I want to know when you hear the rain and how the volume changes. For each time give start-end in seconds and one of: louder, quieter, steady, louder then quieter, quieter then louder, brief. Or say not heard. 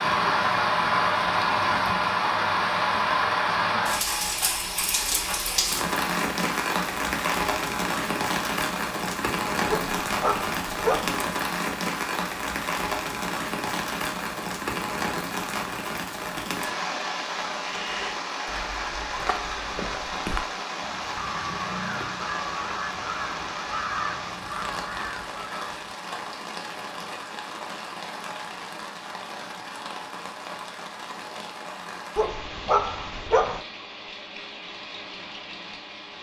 0.0-36.1 quieter.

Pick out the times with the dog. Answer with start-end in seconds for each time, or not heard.
9.7-11.2, 32.1-33.6.